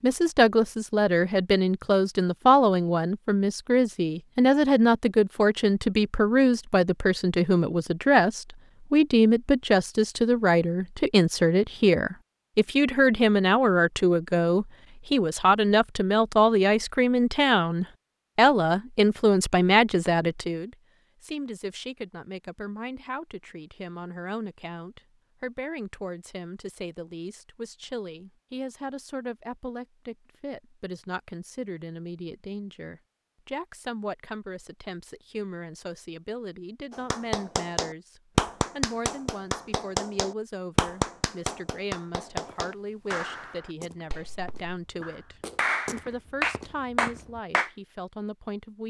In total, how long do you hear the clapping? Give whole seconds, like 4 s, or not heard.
11 s.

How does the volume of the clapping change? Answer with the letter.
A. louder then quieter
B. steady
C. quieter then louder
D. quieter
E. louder
C.